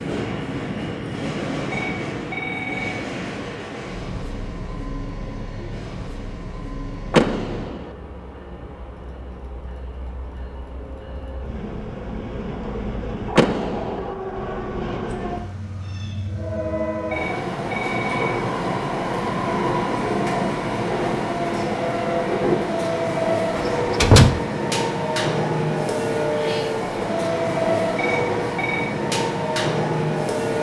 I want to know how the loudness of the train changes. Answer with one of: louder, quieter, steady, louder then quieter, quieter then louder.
quieter then louder.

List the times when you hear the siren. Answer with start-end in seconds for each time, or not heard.
not heard.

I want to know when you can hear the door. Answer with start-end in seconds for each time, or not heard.
7.1-7.8, 13.3-14.1, 23.6-24.3.